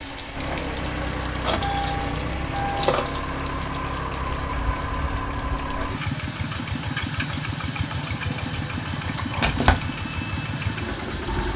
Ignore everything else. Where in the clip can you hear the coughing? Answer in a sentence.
You can't hear the coughing here.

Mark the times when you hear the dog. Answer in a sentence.
You can't hear the dog here.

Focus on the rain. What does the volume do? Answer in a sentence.
The loudness of the rain stays about the same.